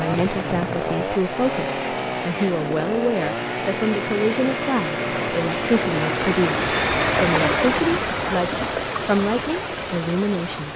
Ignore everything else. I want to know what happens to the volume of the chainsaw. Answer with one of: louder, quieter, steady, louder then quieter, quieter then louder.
steady.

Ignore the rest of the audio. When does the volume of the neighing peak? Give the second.
7 s.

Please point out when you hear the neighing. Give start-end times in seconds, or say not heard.
0.1-1.1, 6.7-8.0.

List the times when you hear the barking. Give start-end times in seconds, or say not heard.
not heard.